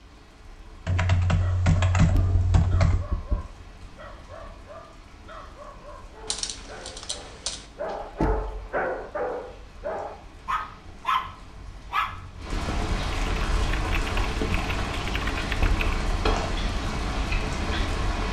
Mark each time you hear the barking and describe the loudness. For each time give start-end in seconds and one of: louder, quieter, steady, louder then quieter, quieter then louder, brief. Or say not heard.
1.2-12.9 louder.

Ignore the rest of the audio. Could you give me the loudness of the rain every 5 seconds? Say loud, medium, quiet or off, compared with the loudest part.
quiet, quiet, loud, loud.